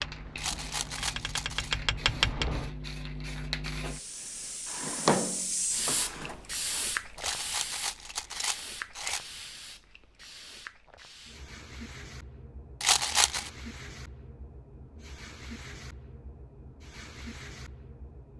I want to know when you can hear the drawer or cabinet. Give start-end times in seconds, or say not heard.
4.7-6.8.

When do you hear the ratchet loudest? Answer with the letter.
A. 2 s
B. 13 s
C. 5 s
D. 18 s
A.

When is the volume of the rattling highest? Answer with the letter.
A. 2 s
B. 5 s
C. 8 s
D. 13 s
D.